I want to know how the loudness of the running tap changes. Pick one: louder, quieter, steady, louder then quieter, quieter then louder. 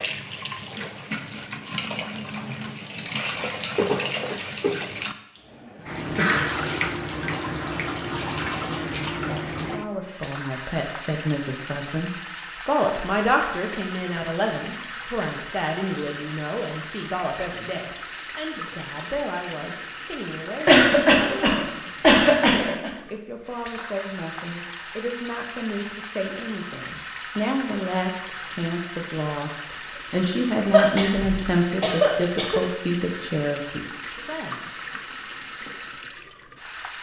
quieter.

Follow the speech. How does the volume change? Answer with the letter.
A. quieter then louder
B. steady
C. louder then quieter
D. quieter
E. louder
A.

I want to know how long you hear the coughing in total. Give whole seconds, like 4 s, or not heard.
5 s.